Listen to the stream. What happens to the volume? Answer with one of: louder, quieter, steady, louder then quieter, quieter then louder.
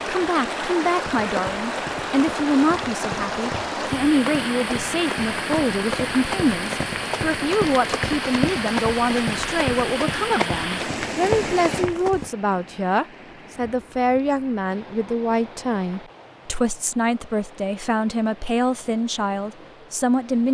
quieter.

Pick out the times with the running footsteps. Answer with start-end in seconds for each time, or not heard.
0.8-12.3.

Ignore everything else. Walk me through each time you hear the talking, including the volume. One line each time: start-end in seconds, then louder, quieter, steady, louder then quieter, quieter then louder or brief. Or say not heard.
0.1-20.4 steady.